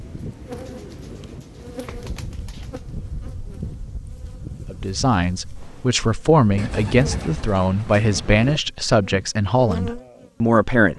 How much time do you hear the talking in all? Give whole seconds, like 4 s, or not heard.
6 s.